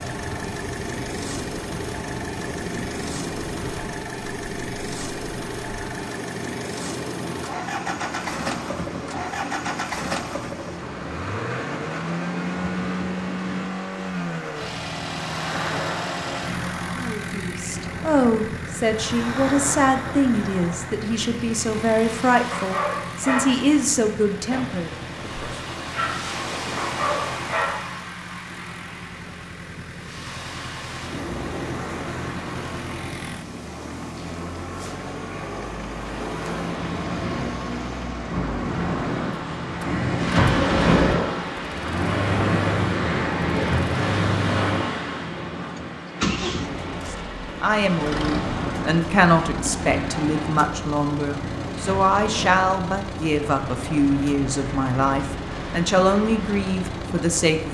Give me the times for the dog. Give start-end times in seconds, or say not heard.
22.5-24.7, 25.8-28.0.